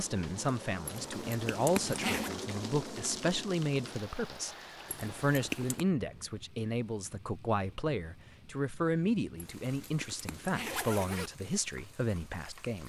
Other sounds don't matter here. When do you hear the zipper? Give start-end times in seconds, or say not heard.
0.8-2.3, 4.8-5.8, 9.3-11.3.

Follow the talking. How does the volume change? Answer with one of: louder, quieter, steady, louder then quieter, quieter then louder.
steady.